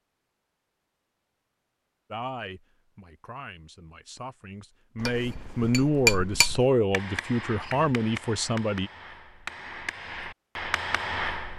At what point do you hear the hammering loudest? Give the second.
6 s.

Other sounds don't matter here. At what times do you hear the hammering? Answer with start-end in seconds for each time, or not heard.
5.0-11.5.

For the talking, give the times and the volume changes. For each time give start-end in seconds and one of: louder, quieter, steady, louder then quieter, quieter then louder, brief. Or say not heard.
2.1-8.9 louder.